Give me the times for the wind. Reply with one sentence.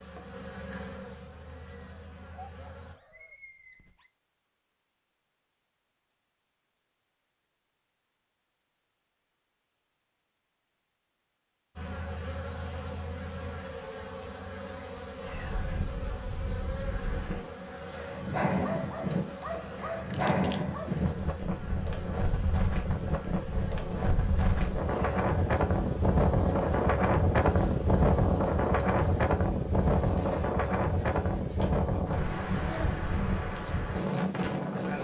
You can hear the wind from 15.2 to 34.9 s.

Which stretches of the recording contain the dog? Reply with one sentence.
The dog can be heard from 1.4 to 4.1 s and from 18.6 to 20.9 s.